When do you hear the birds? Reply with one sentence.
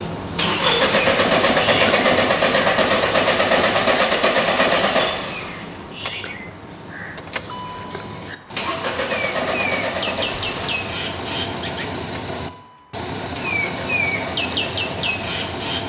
The birds can be heard from 0.0 to 15.8 s.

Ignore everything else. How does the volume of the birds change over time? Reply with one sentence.
The loudness of the birds goes down, then up.